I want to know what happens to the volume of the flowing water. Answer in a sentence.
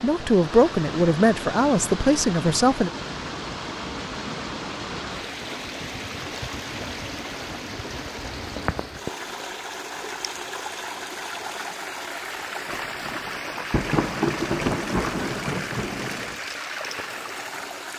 The volume of the flowing water stays about the same.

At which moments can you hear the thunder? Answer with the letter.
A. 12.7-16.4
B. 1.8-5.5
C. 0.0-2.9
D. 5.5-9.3
A.